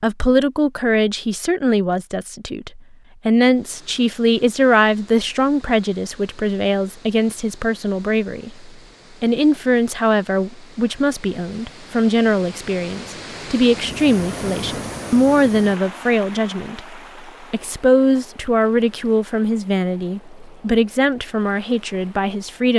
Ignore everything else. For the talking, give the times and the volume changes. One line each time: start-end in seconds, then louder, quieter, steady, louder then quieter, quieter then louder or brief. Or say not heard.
0.0-22.7 steady.